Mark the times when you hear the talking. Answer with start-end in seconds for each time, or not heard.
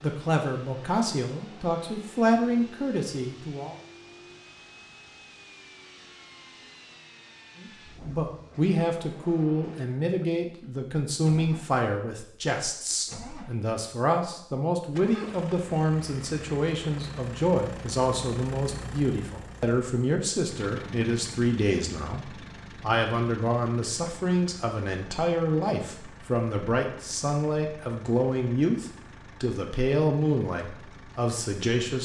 0.0-3.8, 7.6-31.9.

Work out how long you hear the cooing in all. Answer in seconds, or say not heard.
not heard.